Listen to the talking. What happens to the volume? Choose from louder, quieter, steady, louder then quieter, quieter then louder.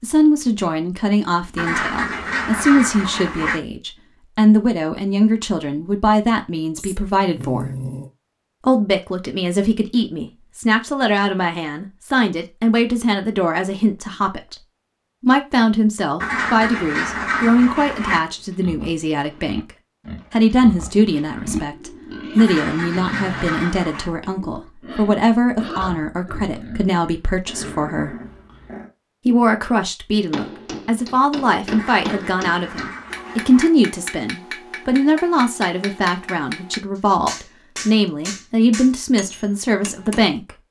steady.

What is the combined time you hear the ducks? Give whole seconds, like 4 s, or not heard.
8 s.